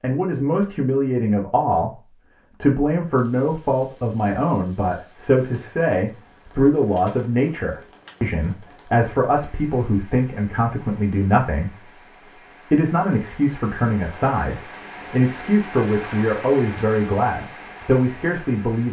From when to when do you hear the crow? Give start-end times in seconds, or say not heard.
not heard.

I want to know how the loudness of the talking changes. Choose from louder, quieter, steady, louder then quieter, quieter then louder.
steady.